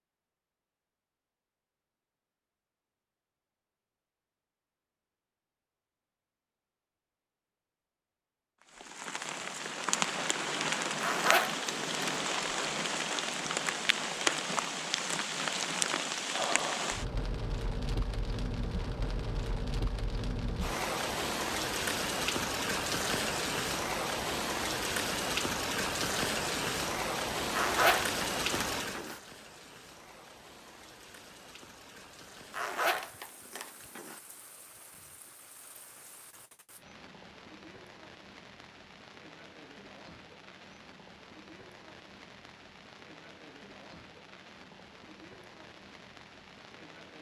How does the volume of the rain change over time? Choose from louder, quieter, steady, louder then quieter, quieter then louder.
quieter.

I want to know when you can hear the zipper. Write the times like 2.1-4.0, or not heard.
11.0-12.2, 27.5-29.2, 32.5-34.2.